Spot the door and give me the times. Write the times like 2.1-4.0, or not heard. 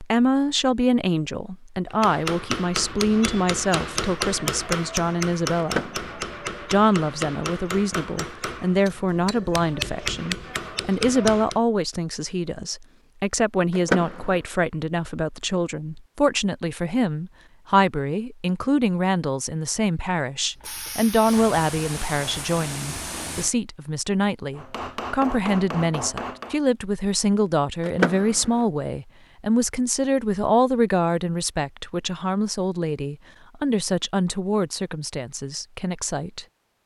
5.5-6.2, 13.7-14.4, 27.9-28.6.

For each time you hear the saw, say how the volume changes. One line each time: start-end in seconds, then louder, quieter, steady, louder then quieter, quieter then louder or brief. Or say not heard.
not heard.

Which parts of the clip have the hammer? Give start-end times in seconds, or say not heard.
1.9-11.6, 24.6-26.6.